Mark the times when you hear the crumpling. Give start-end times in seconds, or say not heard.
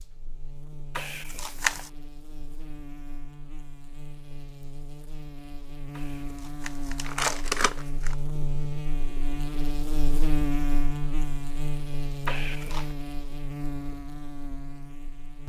0.9-1.9, 6.6-8.2, 12.2-12.9.